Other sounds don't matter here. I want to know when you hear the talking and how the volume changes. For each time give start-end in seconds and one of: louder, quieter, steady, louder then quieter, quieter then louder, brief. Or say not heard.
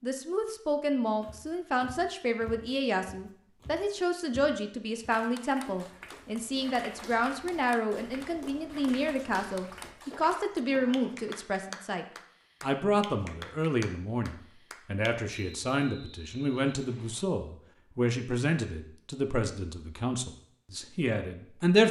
0.0-21.8 steady.